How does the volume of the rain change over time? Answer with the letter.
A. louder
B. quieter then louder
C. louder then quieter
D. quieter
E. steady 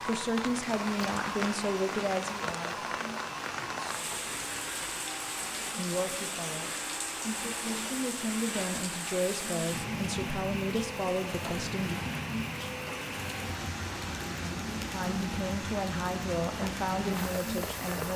E.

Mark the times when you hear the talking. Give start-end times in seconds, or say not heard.
0.1-2.9, 5.8-11.9, 14.9-18.1.